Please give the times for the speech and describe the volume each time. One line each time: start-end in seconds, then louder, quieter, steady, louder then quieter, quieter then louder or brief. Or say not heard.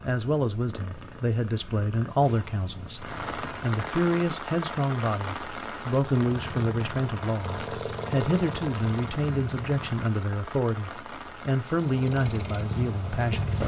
0.0-13.6 steady.